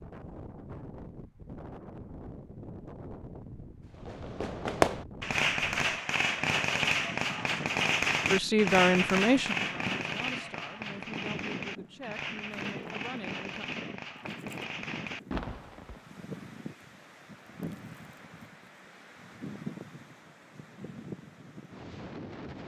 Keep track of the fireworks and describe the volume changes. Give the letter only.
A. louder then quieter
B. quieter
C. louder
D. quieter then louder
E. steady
B.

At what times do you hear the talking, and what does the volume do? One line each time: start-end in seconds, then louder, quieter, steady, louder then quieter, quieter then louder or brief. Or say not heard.
8.3-13.7 quieter.